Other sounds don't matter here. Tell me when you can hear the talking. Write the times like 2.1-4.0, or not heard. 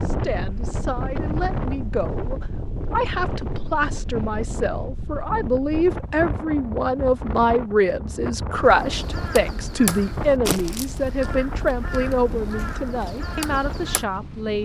0.0-14.6.